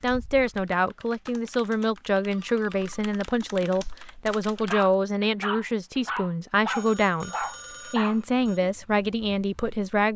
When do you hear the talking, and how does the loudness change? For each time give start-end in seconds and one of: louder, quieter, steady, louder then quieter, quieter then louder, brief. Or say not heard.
0.0-10.1 steady.